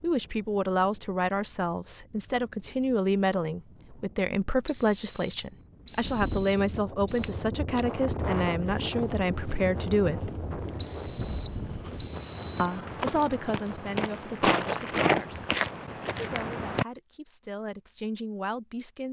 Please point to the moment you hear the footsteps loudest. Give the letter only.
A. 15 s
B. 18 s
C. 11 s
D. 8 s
A.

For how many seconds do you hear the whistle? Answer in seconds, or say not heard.
5 s.